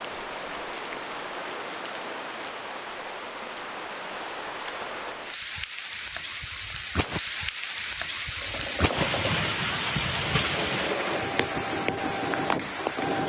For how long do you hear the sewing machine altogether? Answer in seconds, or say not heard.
5 s.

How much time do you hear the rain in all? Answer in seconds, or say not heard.
13 s.